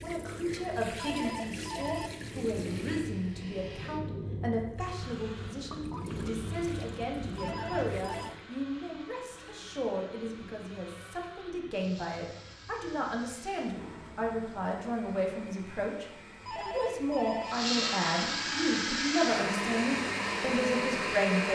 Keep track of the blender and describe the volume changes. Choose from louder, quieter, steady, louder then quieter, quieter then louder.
louder.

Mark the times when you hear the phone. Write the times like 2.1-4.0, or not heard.
0.9-2.1, 7.3-8.3, 16.4-17.6.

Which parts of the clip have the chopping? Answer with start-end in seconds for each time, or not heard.
not heard.